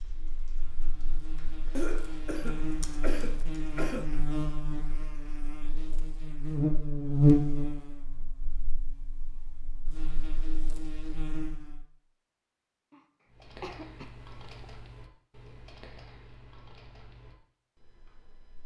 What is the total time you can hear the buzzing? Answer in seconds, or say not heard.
12 s.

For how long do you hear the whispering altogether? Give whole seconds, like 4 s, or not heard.
not heard.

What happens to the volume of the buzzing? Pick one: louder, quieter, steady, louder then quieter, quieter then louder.
louder then quieter.